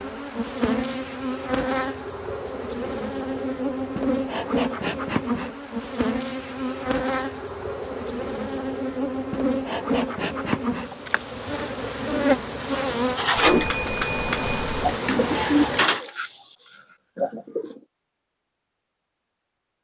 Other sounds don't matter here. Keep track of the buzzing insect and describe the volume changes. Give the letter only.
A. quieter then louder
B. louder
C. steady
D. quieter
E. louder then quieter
C.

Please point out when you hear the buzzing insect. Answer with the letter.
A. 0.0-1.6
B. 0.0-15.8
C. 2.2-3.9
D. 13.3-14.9
B.